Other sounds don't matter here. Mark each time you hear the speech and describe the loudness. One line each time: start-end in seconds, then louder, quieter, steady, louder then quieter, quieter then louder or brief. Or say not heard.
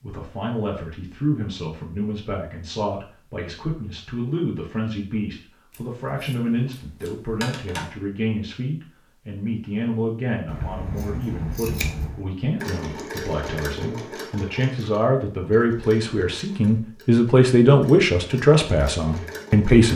0.0-19.9 louder.